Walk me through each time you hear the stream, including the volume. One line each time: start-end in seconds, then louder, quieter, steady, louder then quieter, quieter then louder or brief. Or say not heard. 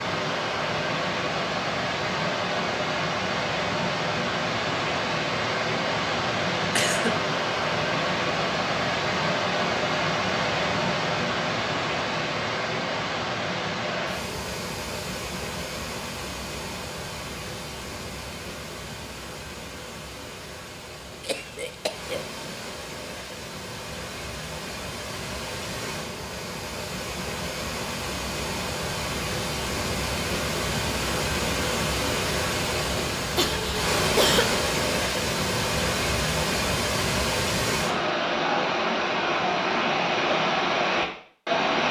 0.0-41.8 quieter then louder.